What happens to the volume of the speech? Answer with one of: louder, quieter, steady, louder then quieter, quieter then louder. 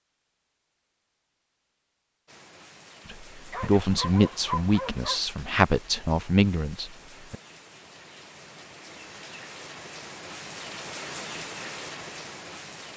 quieter then louder.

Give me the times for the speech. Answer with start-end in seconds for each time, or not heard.
3.1-7.3.